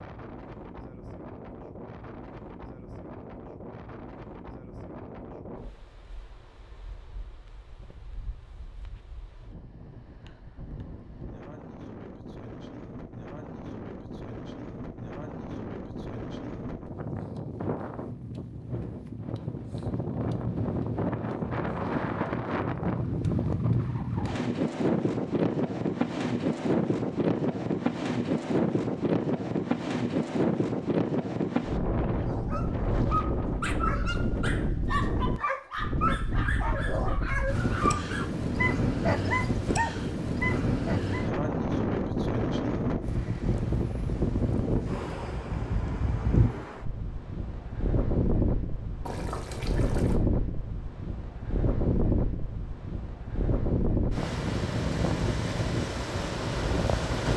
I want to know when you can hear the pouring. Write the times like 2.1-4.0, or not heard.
49.0-50.2.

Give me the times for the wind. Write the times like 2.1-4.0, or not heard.
0.0-57.3.